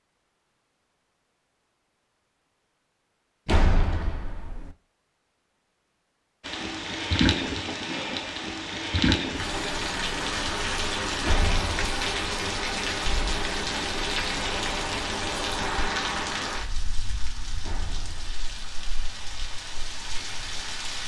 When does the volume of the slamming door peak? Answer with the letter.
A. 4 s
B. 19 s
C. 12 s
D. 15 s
A.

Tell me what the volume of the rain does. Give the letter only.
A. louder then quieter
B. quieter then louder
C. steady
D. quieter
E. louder
D.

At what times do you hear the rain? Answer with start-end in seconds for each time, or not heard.
6.4-21.0.